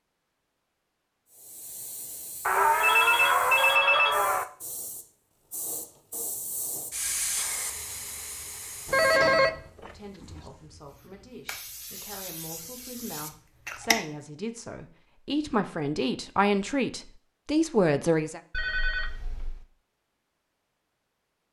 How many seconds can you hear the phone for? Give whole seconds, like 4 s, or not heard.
5 s.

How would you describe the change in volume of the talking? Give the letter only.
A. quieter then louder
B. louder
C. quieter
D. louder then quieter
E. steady
B.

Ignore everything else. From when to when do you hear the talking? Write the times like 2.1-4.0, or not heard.
9.8-18.4.